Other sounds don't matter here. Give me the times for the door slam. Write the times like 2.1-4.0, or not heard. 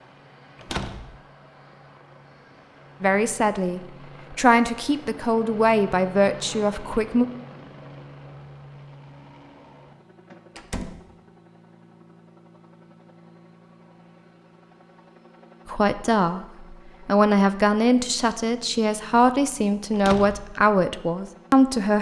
0.6-1.1, 10.6-11.1, 19.9-20.5.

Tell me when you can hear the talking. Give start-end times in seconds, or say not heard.
3.0-7.2, 15.7-21.9.